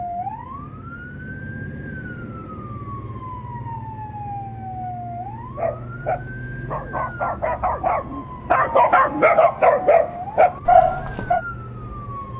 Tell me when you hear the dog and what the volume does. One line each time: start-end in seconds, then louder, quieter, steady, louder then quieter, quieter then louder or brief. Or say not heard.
5.5-11.4 louder.